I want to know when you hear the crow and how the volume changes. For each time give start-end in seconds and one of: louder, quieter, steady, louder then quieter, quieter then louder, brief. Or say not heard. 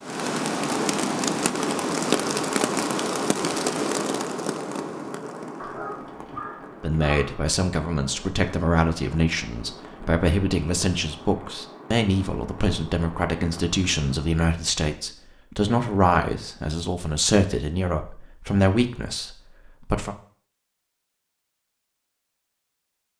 not heard.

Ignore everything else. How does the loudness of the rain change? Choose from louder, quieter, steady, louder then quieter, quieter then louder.
quieter.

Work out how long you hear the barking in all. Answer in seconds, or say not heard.
2 s.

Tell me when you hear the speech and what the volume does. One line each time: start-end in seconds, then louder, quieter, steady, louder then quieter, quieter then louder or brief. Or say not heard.
6.8-20.1 steady.